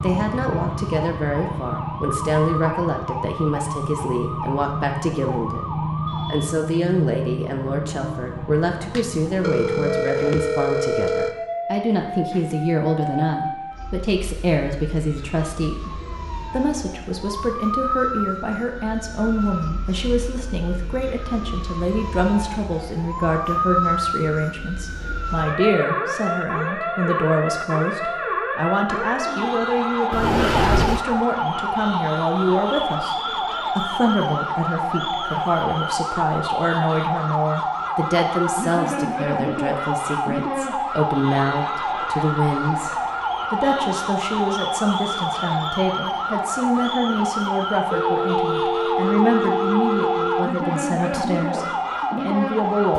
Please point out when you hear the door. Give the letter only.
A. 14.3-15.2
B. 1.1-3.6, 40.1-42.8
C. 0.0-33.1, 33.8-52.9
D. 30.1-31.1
D.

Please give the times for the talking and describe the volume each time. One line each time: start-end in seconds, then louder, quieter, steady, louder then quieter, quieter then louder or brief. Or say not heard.
0.0-33.1 steady
33.8-52.9 steady.